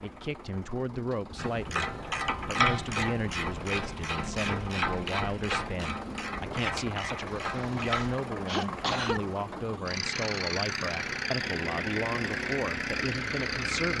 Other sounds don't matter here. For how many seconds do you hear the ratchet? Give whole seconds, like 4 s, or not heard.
7 s.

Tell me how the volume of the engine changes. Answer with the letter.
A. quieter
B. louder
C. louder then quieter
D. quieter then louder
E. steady
B.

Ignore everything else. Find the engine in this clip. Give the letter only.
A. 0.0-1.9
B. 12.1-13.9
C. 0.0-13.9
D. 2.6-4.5
C.